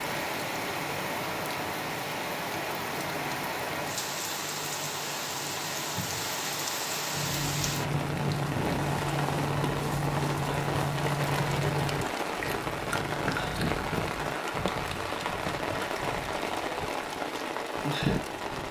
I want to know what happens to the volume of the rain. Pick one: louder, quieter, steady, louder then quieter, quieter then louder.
steady.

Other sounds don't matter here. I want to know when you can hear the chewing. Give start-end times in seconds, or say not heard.
7.1-14.4.